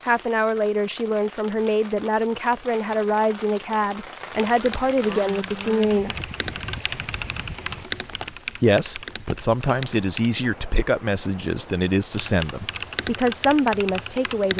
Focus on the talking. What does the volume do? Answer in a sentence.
The loudness of the talking stays about the same.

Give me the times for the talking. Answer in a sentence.
You can hear the talking from 0.1 to 6.2 s and from 8.6 to 14.5 s.